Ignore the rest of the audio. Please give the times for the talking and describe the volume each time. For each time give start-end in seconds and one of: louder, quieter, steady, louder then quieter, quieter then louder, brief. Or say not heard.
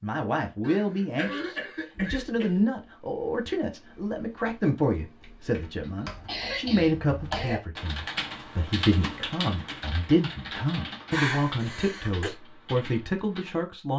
0.0-13.9 steady.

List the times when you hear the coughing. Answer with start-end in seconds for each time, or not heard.
0.6-2.6, 6.2-7.6, 11.1-12.3.